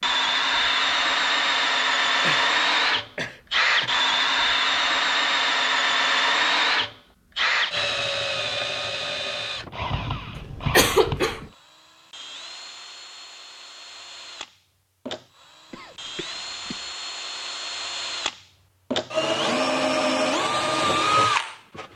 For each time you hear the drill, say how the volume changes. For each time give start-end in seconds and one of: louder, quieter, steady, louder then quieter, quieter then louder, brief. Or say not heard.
0.0-21.9 quieter then louder.